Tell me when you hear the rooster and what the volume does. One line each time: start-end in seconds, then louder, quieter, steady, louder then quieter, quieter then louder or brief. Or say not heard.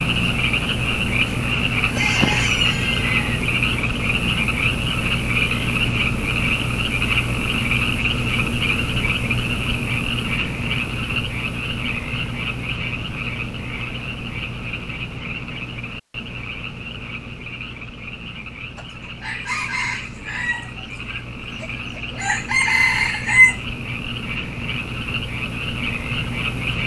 1.8-3.5 brief
18.8-23.6 quieter then louder.